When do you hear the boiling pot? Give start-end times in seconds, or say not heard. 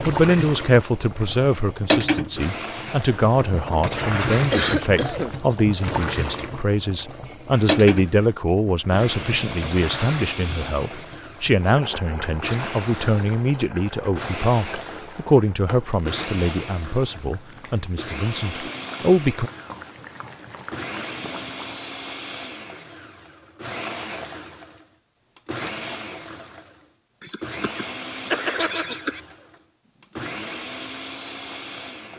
0.0-21.9.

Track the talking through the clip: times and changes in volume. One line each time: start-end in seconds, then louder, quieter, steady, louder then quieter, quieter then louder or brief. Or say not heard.
0.0-19.5 steady.